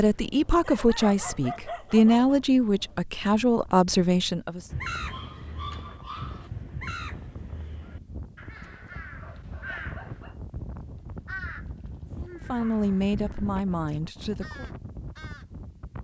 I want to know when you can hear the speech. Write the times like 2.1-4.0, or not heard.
0.0-4.7, 12.2-14.7.